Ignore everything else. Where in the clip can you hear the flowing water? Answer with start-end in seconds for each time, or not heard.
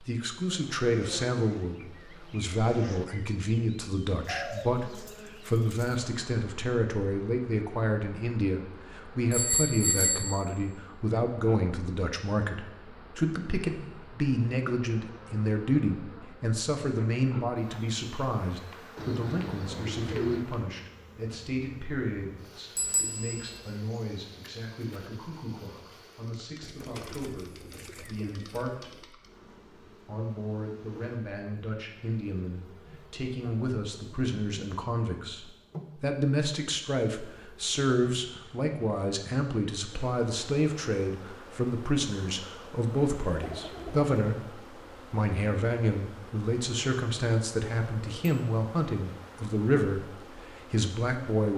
not heard.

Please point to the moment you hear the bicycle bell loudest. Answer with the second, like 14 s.
10 s.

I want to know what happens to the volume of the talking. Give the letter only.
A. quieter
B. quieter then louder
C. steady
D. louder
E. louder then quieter
B.